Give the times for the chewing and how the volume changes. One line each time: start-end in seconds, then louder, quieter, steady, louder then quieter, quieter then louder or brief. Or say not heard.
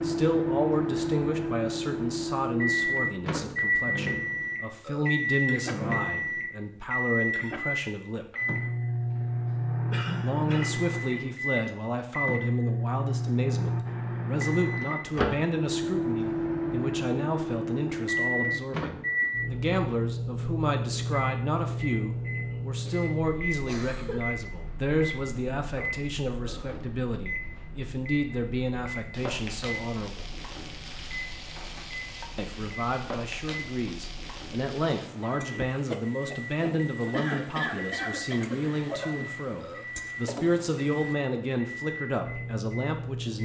not heard.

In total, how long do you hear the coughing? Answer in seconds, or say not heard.
4 s.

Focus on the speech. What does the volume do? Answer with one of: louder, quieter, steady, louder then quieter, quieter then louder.
steady.